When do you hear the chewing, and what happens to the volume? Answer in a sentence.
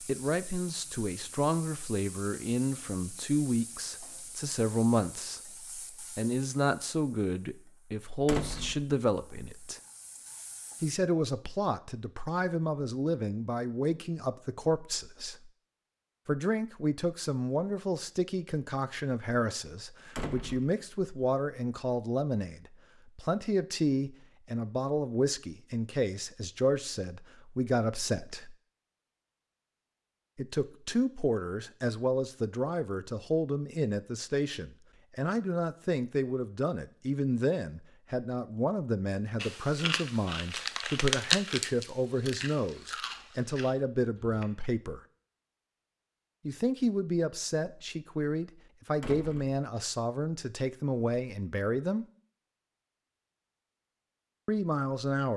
The chewing can be heard from 39.4 to 44.5 s, getting louder then quieter.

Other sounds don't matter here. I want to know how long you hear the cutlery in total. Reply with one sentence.
You can't hear the cutlery here.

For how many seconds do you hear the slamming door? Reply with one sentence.
The slamming door can be heard for 2 seconds in total.